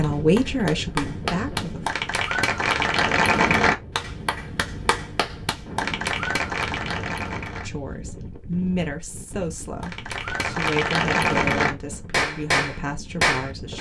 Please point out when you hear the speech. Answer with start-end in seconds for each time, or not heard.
0.0-1.9, 7.7-13.7.